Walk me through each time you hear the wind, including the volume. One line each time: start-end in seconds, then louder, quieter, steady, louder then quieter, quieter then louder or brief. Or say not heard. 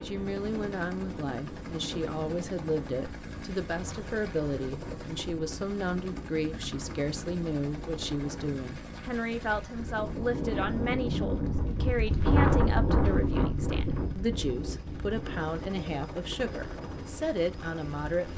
0.0-18.3 louder then quieter.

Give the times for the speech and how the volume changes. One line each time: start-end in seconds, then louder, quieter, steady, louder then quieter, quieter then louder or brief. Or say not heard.
0.0-18.2 steady.